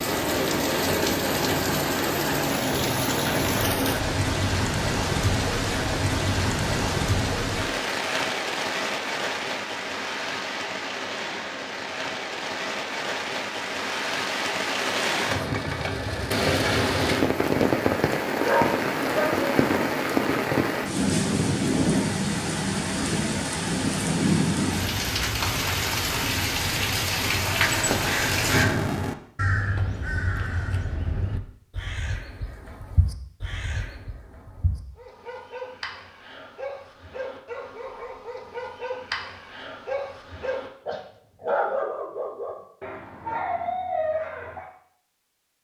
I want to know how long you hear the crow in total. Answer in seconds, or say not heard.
7 s.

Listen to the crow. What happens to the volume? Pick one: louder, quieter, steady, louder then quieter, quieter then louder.
quieter.